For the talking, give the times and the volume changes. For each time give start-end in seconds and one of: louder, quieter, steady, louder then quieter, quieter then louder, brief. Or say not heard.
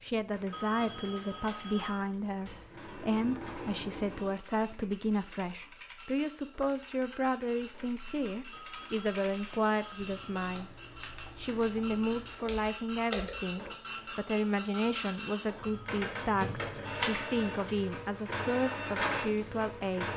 0.0-10.7 steady
11.3-20.1 steady.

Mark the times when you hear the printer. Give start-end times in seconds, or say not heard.
0.0-20.1.